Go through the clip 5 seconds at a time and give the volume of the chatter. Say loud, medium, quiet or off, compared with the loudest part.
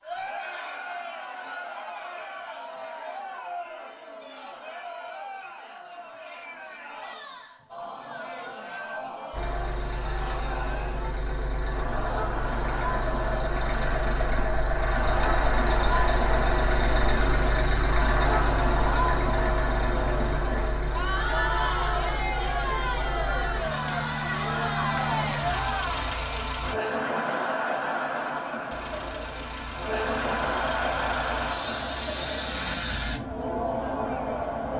medium, medium, medium, loud, loud, loud, loud.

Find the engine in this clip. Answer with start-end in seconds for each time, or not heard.
9.3-26.8, 28.7-33.2.